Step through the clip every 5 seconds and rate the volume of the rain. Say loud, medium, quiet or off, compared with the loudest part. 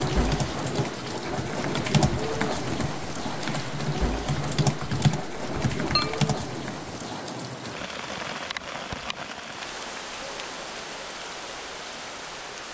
loud, loud, medium.